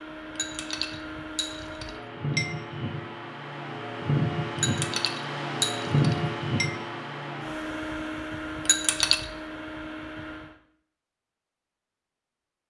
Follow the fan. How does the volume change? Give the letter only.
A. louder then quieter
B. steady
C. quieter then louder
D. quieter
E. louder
A.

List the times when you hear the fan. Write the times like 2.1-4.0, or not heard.
0.0-10.6.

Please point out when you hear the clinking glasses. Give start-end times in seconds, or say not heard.
0.3-2.5, 4.5-6.7, 8.7-9.2.